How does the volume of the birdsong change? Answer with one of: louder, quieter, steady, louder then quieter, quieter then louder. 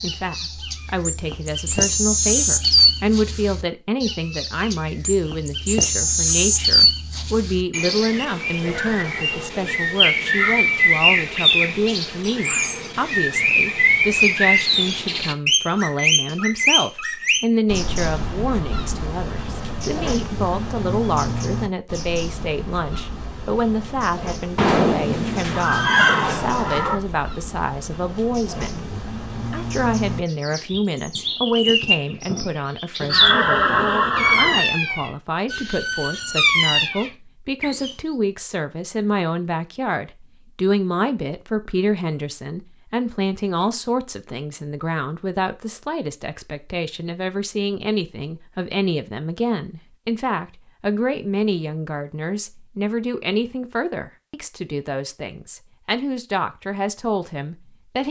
quieter then louder.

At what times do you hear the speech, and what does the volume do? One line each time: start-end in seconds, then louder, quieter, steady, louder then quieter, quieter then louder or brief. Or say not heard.
0.0-58.0 steady.